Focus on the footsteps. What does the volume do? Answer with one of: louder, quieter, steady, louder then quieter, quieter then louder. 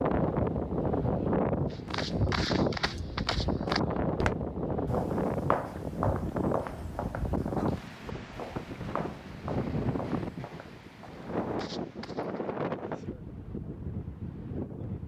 quieter.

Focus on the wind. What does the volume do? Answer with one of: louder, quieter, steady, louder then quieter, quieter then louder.
quieter.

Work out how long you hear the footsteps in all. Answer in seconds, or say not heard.
11 s.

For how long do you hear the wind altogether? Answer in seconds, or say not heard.
15 s.